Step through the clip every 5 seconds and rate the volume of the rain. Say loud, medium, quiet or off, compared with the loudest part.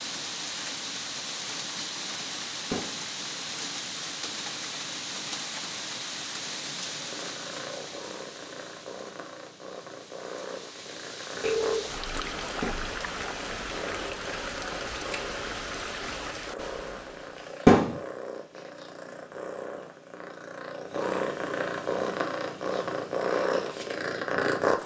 loud, loud, loud, loud, off.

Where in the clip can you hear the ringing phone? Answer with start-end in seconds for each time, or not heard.
11.4-12.0.